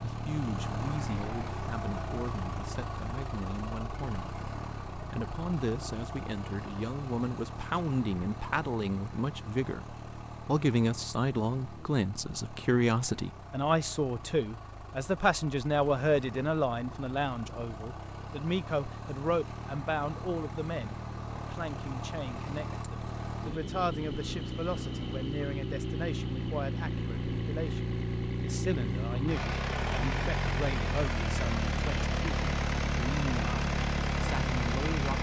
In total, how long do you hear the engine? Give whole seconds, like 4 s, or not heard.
35 s.